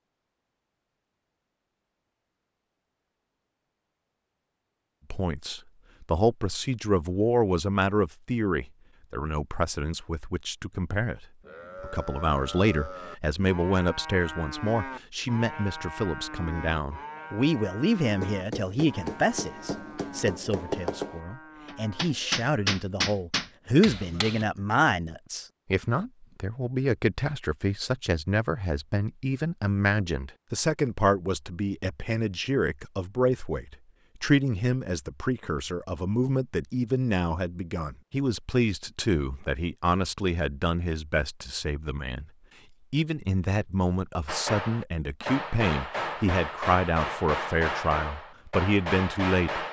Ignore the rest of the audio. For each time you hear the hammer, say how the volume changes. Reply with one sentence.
You can hear the hammer from 18.2 to 24.4 s, getting louder; and from 44.2 to 49.6 s, at a steady volume.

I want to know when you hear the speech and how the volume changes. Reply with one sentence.
The speech can be heard from 5.1 to 42.2 s, at a steady volume; and from 42.9 to 49.6 s, at a steady volume.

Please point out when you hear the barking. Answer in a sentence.
You can't hear the barking here.